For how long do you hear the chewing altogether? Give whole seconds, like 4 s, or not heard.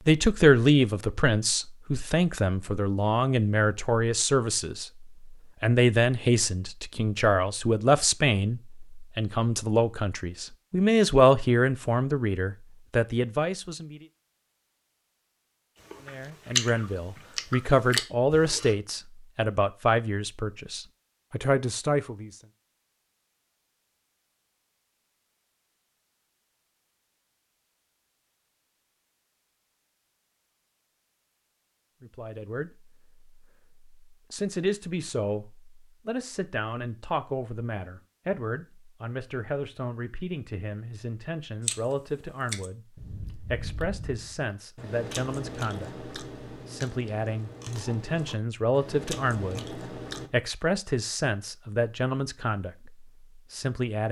12 s.